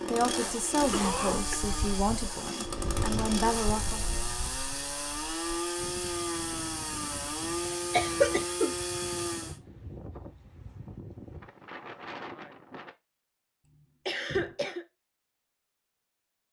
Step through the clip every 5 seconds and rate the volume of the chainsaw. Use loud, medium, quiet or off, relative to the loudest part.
loud, loud, off, off.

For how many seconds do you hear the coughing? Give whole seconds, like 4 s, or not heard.
3 s.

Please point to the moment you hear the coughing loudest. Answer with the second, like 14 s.
8 s.